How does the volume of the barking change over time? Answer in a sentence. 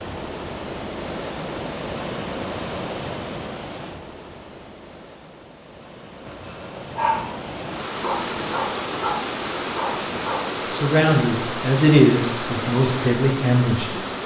The volume of the barking goes down, then up.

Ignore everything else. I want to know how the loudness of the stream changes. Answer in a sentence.
The loudness of the stream goes down, then up.